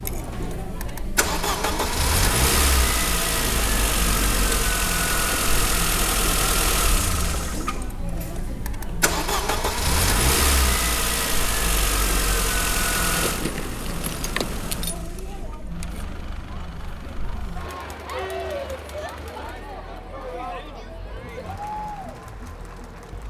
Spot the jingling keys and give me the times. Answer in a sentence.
The jingling keys can be heard from 3.4 to 4.8 s and from 13.2 to 15.0 s.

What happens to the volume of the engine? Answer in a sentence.
The volume of the engine goes down.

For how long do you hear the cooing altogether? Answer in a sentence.
The cooing can't be heard in this clip.